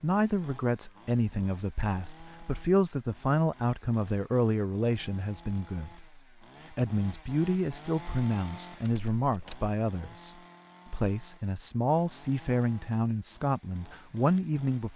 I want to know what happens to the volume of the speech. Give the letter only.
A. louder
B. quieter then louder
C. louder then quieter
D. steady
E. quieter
D.